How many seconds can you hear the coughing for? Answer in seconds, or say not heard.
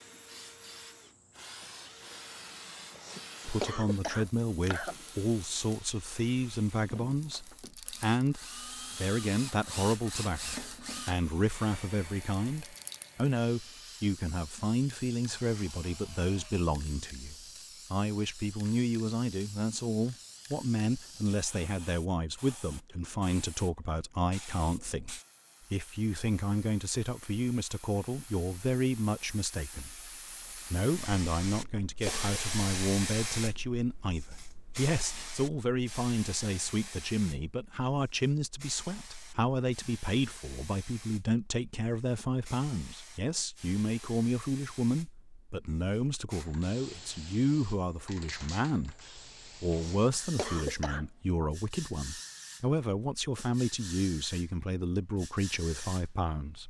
4 s.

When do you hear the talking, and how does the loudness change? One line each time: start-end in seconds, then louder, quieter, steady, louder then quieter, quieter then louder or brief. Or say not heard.
3.5-56.6 steady.